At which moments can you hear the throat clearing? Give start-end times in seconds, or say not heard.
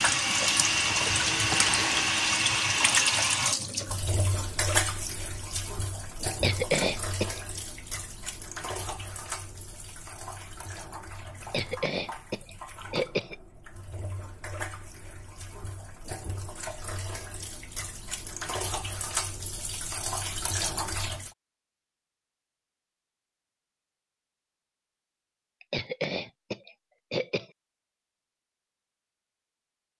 6.3-7.5, 11.4-13.3, 25.6-27.4.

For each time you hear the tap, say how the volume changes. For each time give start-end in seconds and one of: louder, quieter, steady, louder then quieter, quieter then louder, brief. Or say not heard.
0.0-21.3 quieter then louder.